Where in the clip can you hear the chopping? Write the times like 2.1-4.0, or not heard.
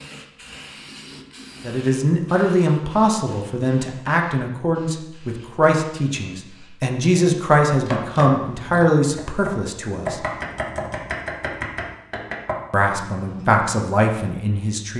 7.8-13.8.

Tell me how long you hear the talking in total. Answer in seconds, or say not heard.
11 s.